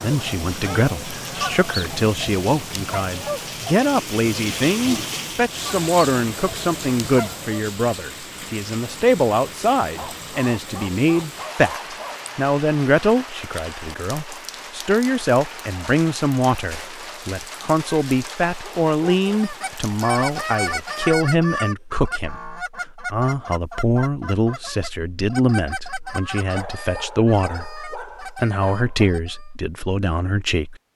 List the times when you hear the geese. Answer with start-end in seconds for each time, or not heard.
0.0-7.7, 19.2-29.5.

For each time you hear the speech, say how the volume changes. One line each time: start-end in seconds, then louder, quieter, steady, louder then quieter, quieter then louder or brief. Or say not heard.
0.0-30.8 steady.